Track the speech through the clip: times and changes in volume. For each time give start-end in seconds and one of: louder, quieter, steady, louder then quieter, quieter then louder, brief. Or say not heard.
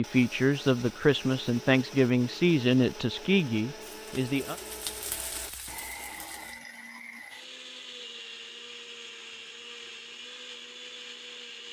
0.0-4.5 quieter.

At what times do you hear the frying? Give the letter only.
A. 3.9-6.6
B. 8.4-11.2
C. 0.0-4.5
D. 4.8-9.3
A.